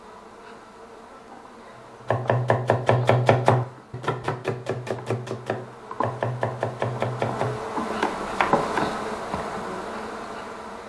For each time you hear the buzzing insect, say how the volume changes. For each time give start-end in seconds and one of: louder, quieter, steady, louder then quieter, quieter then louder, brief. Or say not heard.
0.0-10.8 louder.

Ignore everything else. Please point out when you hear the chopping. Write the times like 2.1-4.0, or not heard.
2.0-8.9.